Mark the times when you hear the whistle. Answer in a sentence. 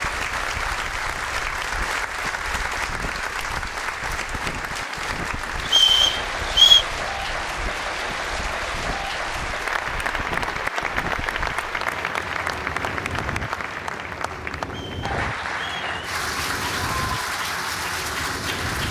You can hear the whistle from 5.7 to 6.8 s and from 14.7 to 15.8 s.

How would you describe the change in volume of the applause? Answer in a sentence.
The loudness of the applause stays about the same.